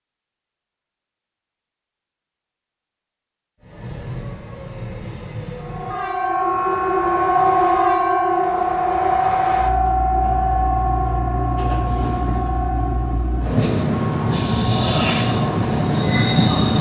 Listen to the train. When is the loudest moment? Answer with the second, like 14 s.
16 s.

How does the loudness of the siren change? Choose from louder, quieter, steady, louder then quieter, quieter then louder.
quieter.